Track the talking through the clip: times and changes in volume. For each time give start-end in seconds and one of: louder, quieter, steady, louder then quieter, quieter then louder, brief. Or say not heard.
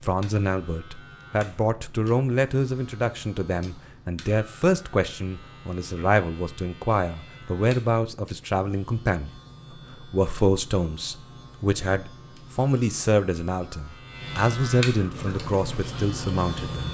0.0-16.8 steady.